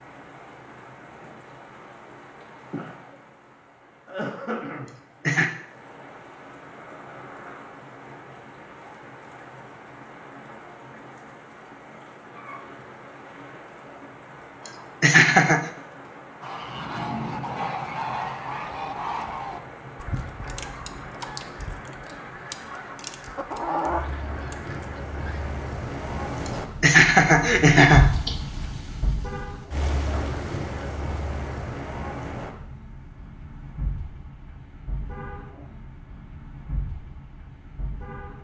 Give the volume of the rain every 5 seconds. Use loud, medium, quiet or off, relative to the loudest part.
medium, medium, medium, medium, medium, loud, loud, medium.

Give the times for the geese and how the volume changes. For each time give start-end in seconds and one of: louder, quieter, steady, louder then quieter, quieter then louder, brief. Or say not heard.
16.4-25.5 quieter then louder.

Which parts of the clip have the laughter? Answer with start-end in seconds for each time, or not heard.
4.8-5.5, 14.7-15.7, 26.4-28.4.